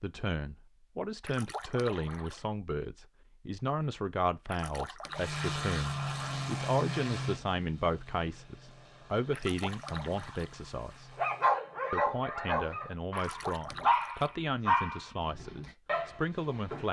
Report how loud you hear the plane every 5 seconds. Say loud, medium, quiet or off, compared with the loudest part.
off, loud, quiet, off.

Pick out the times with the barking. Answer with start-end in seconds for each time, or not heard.
11.2-16.8.